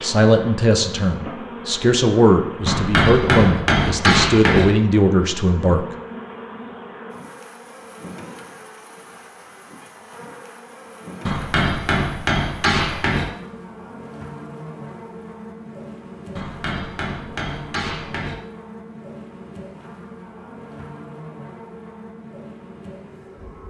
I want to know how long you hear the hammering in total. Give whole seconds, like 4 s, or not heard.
6 s.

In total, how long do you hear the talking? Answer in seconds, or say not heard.
6 s.